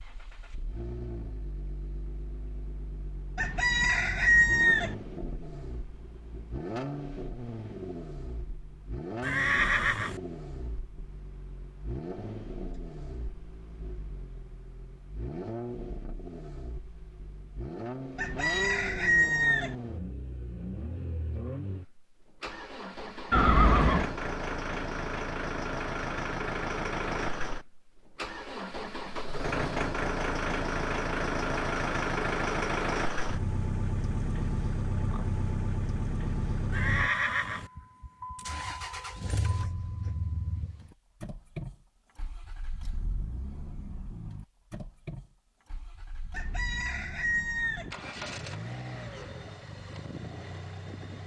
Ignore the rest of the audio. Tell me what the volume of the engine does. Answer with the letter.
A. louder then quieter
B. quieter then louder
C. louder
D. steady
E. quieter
A.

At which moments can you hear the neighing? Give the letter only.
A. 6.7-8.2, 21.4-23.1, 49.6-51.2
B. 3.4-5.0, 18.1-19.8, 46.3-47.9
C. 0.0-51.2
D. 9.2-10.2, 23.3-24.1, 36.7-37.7
D.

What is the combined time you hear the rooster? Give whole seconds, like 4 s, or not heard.
5 s.